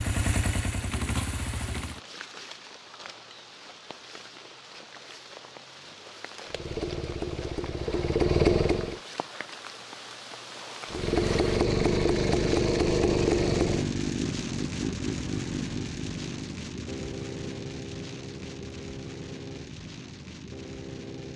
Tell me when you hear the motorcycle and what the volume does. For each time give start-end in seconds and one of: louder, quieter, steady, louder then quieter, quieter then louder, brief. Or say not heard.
0.0-2.0 brief
6.5-9.0 brief
10.9-21.3 quieter.